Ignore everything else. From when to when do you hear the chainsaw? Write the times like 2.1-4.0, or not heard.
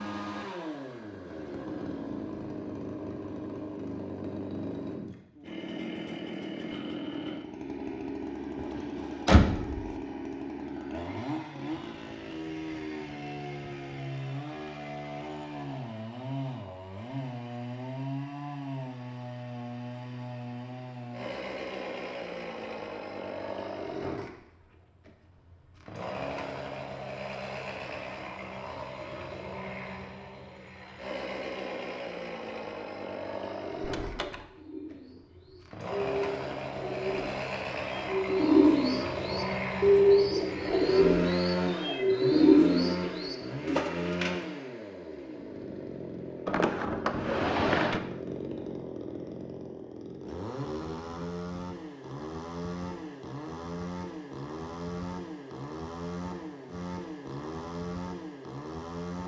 0.0-59.2.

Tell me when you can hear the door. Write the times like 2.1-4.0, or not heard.
8.6-9.8, 33.8-34.5, 46.5-48.0.